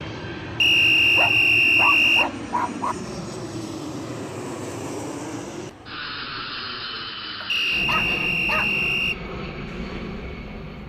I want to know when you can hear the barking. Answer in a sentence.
The barking can be heard from 1.1 to 3.0 s and from 7.4 to 8.8 s.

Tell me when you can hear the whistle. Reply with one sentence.
You can hear the whistle from 0.6 to 2.3 s and from 7.5 to 9.2 s.